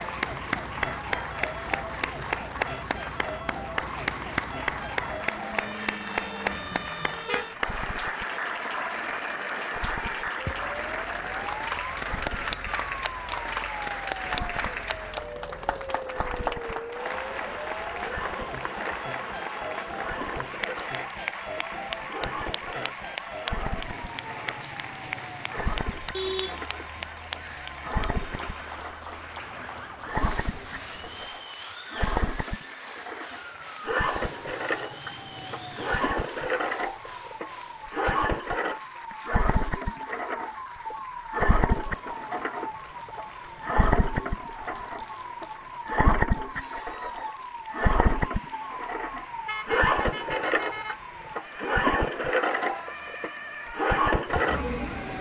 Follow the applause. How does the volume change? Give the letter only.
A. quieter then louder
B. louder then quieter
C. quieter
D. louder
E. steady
C.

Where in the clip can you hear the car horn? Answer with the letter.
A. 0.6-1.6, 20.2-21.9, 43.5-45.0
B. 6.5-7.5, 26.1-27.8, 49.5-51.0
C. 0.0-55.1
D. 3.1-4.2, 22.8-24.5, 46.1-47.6
B.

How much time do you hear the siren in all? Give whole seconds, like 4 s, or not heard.
55 s.